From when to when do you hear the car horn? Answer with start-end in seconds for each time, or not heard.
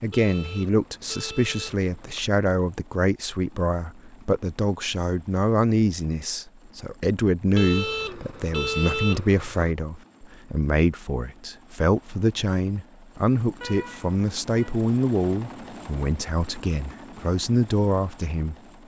0.1-2.3, 7.5-9.8, 13.6-14.8.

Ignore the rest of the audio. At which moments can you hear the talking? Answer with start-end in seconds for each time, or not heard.
0.0-18.6.